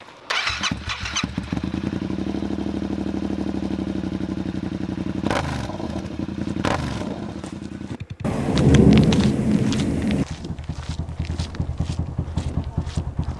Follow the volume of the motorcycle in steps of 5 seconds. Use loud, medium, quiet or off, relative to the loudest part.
loud, loud, medium.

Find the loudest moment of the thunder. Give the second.
9 s.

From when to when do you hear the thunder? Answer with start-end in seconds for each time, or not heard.
8.2-10.2.